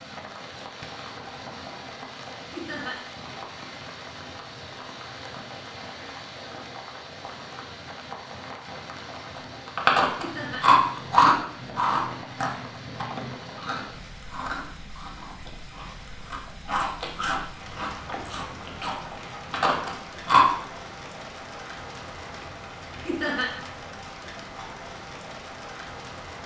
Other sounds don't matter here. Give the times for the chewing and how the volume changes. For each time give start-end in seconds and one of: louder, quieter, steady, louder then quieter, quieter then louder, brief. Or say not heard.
9.3-20.5 quieter then louder.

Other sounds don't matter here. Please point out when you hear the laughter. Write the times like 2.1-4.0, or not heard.
2.5-3.0, 10.2-10.7, 23.1-23.5.